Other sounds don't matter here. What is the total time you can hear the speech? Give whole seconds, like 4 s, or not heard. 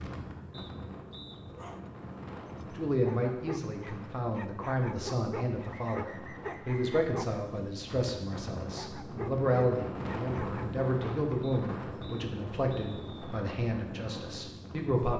12 s.